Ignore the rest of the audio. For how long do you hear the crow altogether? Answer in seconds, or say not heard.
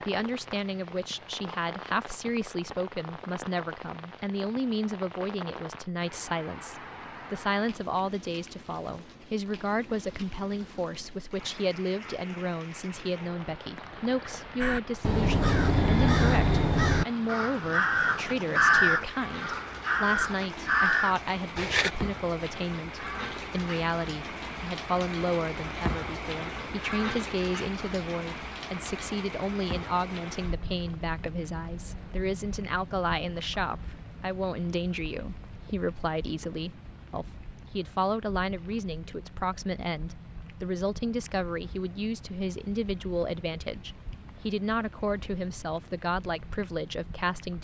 7 s.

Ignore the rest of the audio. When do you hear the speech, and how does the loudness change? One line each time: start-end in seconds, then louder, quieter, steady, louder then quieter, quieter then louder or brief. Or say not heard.
0.1-47.5 steady.